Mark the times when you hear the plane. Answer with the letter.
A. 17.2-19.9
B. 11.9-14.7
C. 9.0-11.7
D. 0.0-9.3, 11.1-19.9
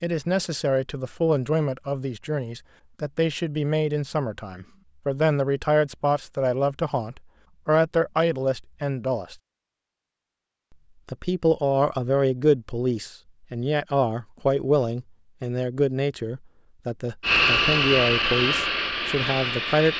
A.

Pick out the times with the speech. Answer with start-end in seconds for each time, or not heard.
0.0-9.3, 11.1-19.9.